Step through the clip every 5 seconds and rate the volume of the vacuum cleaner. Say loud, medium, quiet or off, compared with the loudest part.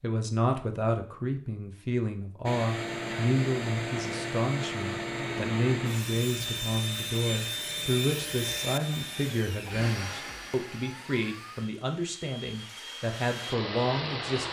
loud, loud, medium.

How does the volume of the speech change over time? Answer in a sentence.
The volume of the speech stays about the same.